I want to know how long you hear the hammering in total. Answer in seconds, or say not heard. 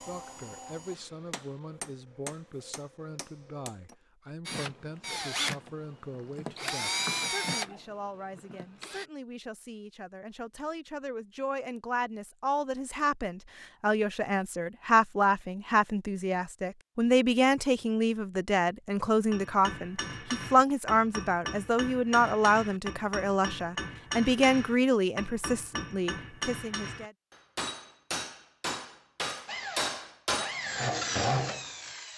15 s.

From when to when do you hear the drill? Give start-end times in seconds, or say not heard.
4.5-9.1, 29.4-32.1.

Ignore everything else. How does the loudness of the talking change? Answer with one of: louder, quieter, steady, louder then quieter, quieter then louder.
louder.